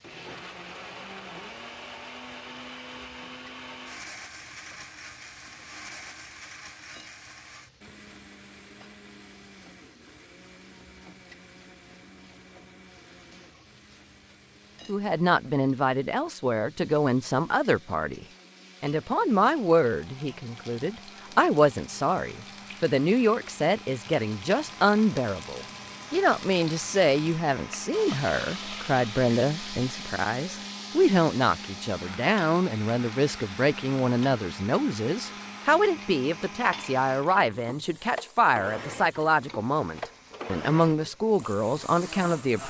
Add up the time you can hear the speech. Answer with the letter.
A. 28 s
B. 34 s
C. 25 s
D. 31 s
A.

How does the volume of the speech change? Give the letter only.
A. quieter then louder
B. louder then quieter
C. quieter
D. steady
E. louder
D.